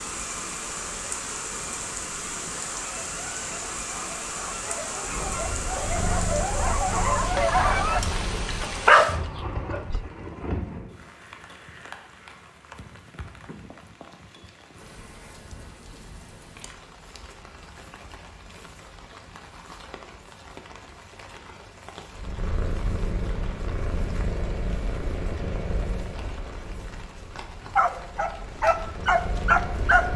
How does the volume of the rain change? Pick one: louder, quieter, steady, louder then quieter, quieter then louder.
quieter.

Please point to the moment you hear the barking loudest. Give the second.
9 s.